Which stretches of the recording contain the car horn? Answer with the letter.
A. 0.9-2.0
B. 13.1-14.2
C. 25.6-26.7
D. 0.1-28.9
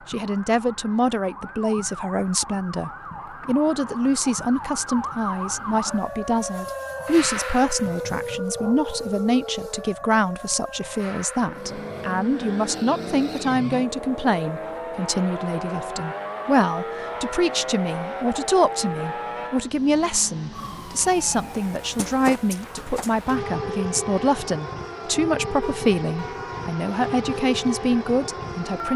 C.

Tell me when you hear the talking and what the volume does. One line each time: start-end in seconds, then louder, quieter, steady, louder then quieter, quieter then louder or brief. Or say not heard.
0.1-28.9 steady.